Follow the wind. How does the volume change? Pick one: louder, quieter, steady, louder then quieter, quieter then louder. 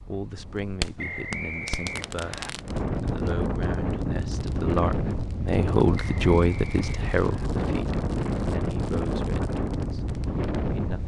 louder.